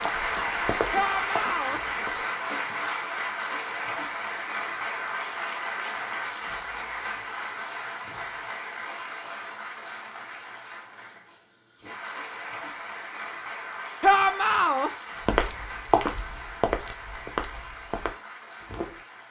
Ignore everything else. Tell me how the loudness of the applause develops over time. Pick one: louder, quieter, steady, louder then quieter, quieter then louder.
quieter.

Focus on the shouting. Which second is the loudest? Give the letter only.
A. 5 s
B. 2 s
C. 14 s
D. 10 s
C.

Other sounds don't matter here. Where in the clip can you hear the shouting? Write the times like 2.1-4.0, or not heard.
0.9-1.8, 14.0-14.9.